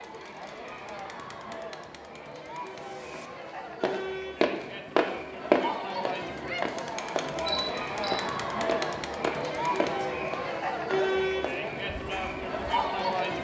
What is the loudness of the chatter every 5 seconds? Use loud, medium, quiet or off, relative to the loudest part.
medium, loud, loud.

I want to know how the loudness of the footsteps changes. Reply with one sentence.
The loudness of the footsteps goes down.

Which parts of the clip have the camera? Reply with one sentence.
The camera can be heard from 7.5 to 8.2 s.